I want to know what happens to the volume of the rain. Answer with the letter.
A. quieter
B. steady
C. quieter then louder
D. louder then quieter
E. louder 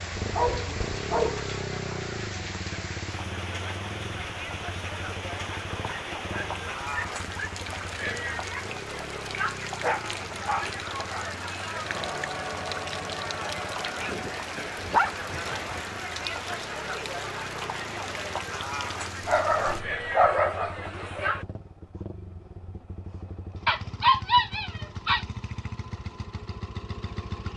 B.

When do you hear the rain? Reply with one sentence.
You can hear the rain from 0.0 to 19.9 s.